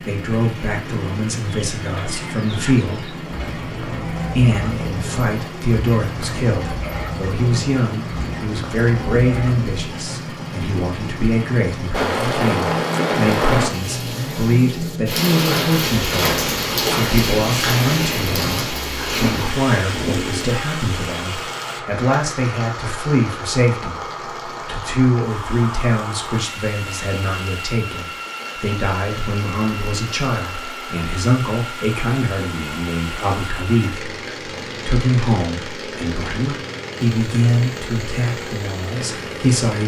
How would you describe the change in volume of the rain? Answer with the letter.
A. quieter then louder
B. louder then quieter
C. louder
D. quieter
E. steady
D.